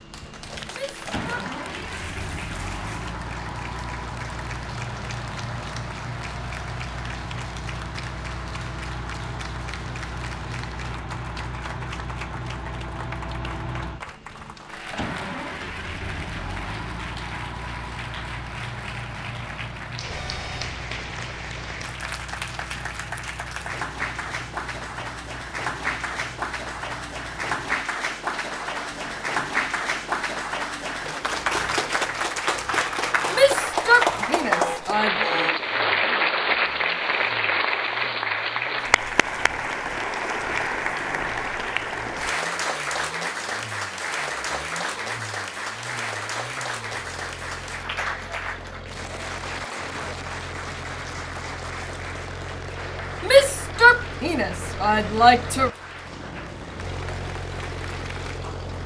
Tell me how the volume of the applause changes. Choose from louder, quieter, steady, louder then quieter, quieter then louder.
louder then quieter.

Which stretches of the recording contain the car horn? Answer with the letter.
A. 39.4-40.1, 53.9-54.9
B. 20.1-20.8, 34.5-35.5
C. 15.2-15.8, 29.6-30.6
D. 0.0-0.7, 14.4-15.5
B.